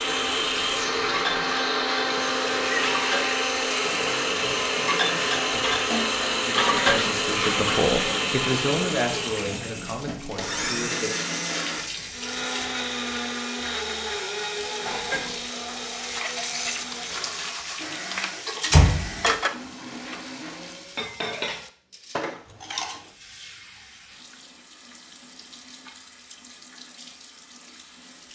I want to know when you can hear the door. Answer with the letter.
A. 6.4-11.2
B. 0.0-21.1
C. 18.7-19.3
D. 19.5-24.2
C.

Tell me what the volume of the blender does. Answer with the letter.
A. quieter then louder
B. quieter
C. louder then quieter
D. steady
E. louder
B.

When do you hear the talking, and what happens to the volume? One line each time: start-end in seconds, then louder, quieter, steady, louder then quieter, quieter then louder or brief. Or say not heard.
6.4-11.2 louder then quieter.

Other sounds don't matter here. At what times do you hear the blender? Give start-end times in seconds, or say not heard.
0.0-21.1.